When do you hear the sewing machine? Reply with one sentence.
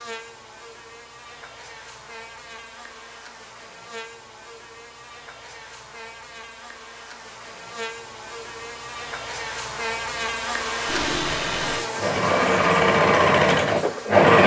The sewing machine can be heard from 10.8 to 14.4 s.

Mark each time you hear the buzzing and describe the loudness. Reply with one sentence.
You can hear the buzzing from 0.0 to 14.3 s, getting louder.